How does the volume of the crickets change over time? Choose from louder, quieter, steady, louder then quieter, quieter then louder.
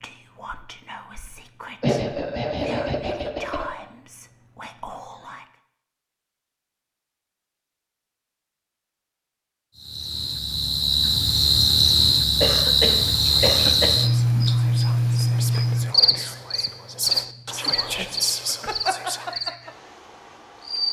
quieter.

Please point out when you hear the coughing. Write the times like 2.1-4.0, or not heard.
1.8-3.7, 12.4-14.1.